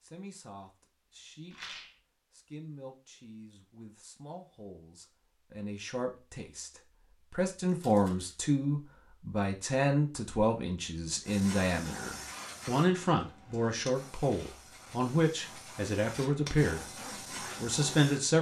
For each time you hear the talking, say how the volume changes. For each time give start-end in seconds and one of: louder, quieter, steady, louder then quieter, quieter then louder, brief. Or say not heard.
0.0-18.3 louder.